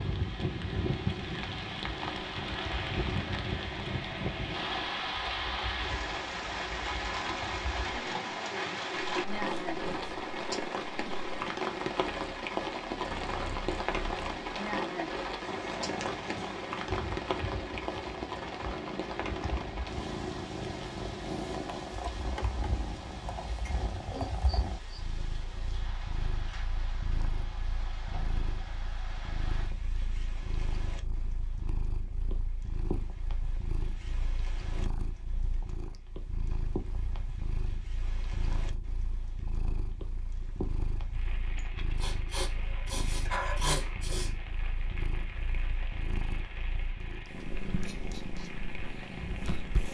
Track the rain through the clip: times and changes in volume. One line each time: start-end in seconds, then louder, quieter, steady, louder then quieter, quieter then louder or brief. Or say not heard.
0.0-49.8 quieter.